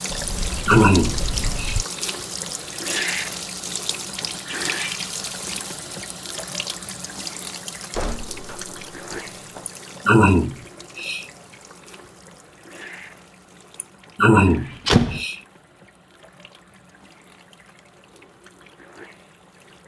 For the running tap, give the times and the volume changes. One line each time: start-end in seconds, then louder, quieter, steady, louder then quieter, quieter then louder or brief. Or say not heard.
0.0-19.8 quieter.